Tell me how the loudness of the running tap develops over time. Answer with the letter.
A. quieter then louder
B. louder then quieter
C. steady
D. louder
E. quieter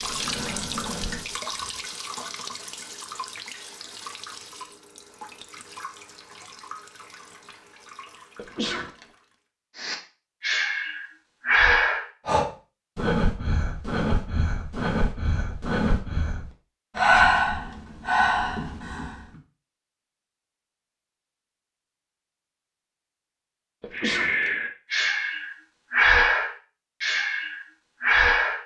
E.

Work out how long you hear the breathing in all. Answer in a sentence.
You can hear the breathing for 16 seconds altogether.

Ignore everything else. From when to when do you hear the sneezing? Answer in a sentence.
You can hear the sneezing from 8.3 to 9.1 s and from 23.8 to 24.5 s.